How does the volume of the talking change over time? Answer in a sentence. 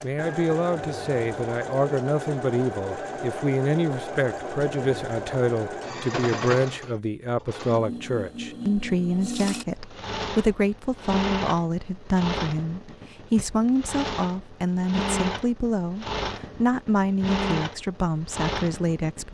The volume of the talking stays about the same.